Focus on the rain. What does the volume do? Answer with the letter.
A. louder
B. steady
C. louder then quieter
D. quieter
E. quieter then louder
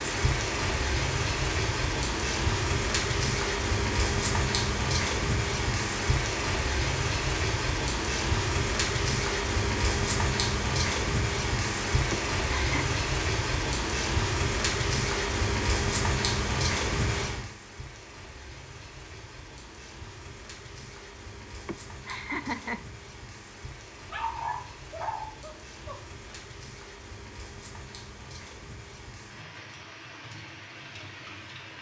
D.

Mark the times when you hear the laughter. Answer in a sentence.
The laughter can be heard from 12.1 to 13.0 s and from 21.6 to 22.9 s.